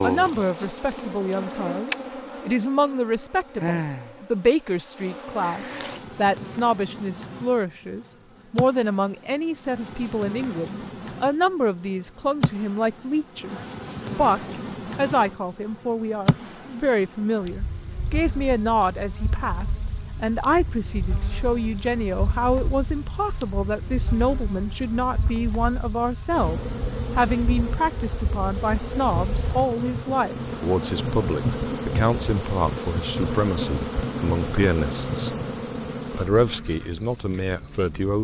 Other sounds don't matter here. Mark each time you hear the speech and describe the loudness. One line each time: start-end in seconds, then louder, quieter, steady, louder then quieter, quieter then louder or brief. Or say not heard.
0.0-35.4 steady
36.1-38.1 brief.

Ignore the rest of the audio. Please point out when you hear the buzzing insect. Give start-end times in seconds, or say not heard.
0.0-38.1.